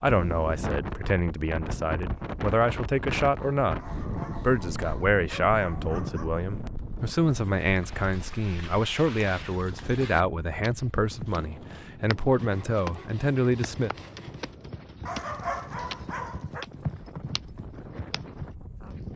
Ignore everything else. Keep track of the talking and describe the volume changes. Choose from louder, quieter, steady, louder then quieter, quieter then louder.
steady.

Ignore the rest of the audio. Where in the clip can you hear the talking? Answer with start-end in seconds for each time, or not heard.
0.0-3.8, 4.4-13.9.